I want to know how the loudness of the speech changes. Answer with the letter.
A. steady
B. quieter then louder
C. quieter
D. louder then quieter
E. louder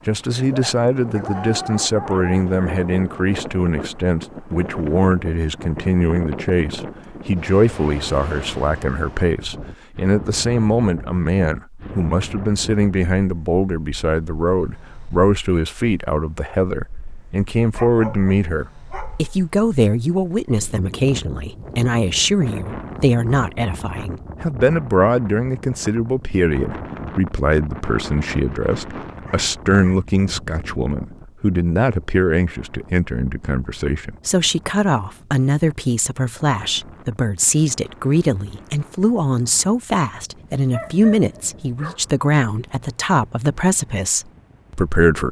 A.